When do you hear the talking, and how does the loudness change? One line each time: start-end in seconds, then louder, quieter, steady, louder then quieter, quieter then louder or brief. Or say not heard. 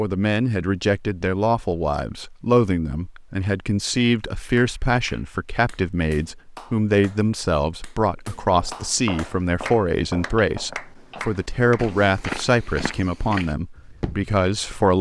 0.0-14.9 steady.